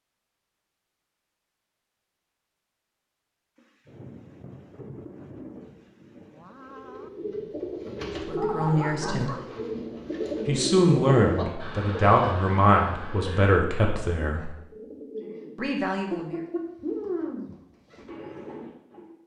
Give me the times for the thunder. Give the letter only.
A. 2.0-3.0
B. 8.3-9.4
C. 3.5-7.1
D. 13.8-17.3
C.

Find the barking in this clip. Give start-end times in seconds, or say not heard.
8.3-9.4.